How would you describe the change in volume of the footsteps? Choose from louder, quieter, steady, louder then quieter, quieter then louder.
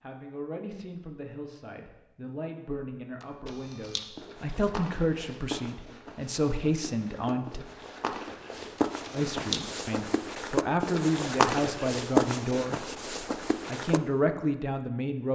louder.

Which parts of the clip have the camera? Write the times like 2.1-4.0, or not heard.
3.2-4.0, 8.8-9.6.